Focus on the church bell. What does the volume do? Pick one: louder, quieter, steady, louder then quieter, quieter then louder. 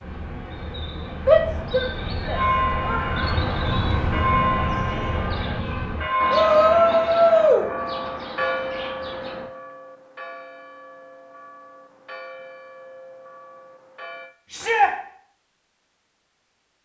quieter.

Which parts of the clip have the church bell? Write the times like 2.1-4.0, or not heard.
2.3-14.3.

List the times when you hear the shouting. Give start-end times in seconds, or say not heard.
1.2-3.0, 6.3-7.7, 14.5-14.9.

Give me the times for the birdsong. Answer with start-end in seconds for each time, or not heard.
0.0-9.4.